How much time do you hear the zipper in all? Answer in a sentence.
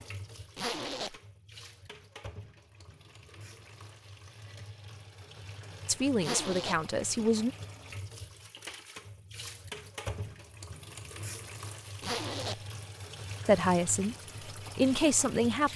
The zipper can be heard for 2 seconds in total.